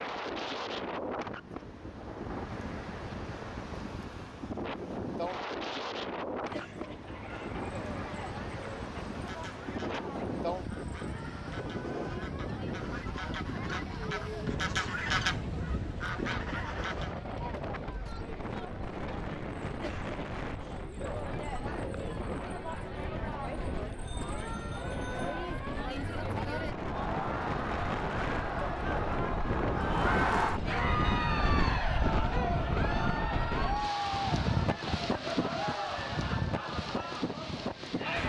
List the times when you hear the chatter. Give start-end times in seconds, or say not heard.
6.4-38.2.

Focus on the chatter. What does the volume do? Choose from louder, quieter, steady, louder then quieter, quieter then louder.
louder.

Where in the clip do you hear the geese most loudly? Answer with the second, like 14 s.
15 s.